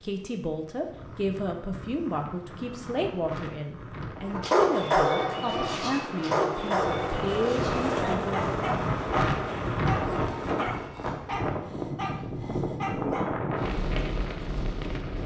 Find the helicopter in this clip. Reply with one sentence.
The helicopter can be heard from 5.2 to 10.9 s.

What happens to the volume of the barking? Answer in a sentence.
The loudness of the barking goes down.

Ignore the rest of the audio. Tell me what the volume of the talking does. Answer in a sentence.
The loudness of the talking stays about the same.